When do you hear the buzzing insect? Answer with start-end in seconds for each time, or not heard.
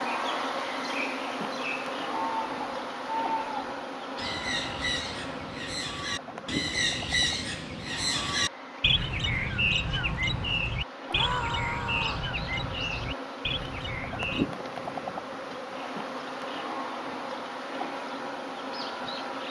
0.0-19.4.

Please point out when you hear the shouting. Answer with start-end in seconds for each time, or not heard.
11.1-12.2.